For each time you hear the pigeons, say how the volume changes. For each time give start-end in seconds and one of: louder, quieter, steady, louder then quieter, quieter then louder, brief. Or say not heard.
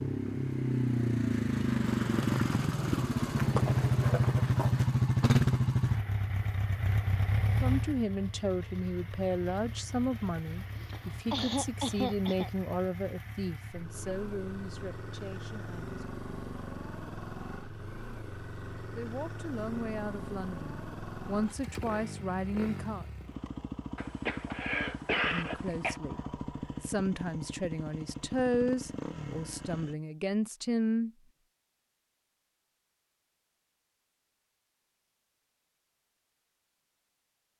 not heard.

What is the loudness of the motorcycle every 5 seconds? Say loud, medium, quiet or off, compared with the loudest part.
loud, loud, quiet, quiet, quiet, quiet, off, off.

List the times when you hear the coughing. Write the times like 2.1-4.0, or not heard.
10.8-12.5, 23.9-26.0.